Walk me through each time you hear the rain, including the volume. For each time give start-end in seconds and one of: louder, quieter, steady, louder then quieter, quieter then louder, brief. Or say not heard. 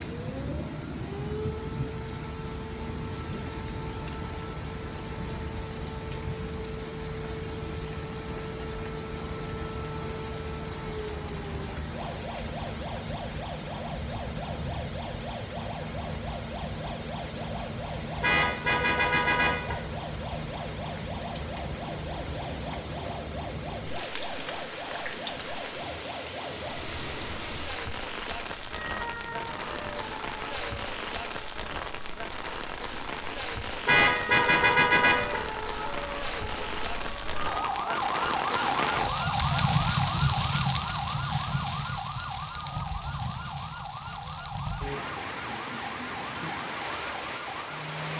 0.0-48.1 louder.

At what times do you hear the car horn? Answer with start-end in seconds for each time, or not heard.
18.2-19.8, 33.9-35.4.